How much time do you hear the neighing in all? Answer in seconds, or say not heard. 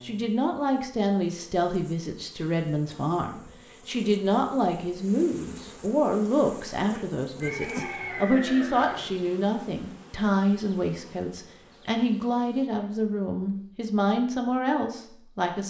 2 s.